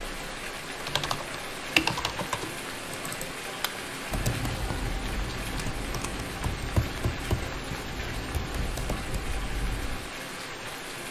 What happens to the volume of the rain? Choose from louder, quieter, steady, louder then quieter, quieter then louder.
steady.